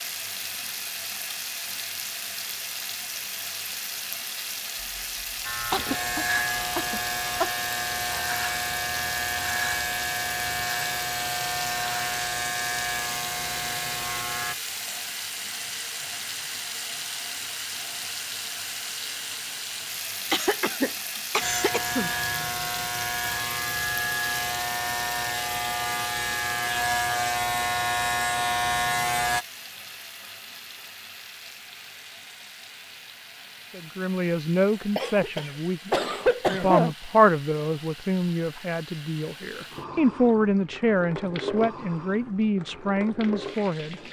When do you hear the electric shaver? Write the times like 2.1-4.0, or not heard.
5.5-14.6, 21.4-29.4.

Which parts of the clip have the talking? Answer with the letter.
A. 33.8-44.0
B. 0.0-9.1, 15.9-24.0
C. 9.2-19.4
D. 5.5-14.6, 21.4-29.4
A.